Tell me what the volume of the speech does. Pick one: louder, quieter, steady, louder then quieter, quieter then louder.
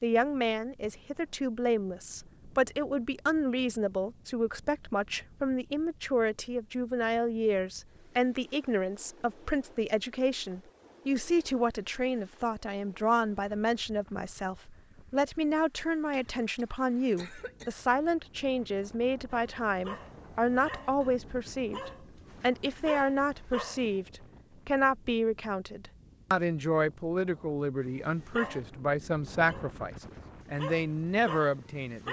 steady.